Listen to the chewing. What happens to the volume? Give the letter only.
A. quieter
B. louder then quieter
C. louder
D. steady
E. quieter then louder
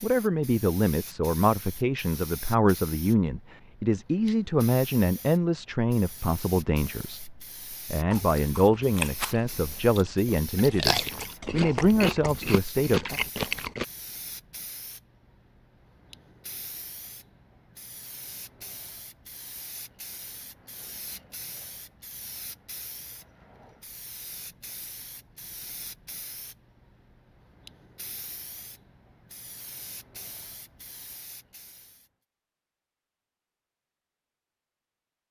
E.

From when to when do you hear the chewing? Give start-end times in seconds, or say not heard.
8.1-13.8.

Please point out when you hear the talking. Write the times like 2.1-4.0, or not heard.
0.0-13.2.